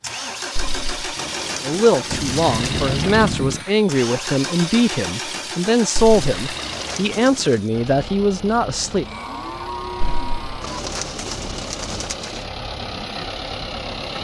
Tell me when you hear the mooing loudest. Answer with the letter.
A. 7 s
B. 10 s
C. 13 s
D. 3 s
D.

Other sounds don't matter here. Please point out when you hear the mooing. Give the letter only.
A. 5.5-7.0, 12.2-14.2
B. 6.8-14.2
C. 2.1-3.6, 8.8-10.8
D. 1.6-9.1
C.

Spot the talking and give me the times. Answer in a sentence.
The talking can be heard from 1.6 to 9.1 s.